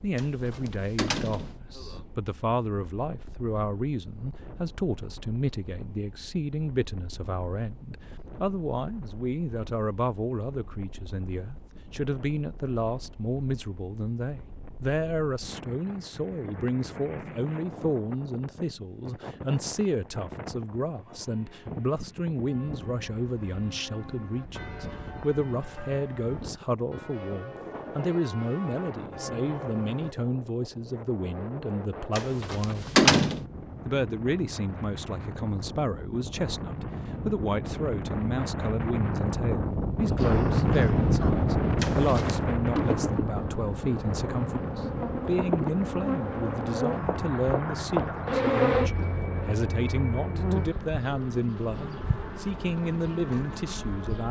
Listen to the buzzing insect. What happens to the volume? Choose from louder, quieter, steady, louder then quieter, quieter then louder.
louder then quieter.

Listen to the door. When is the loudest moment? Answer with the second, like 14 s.
33 s.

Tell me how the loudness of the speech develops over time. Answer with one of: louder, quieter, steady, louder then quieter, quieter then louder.
steady.